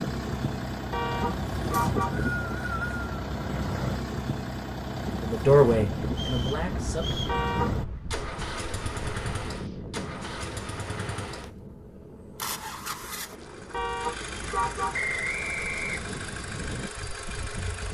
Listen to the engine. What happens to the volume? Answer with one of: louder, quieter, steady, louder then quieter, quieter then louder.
quieter.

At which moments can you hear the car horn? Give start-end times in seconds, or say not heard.
0.9-2.2, 7.2-8.0, 13.7-15.0.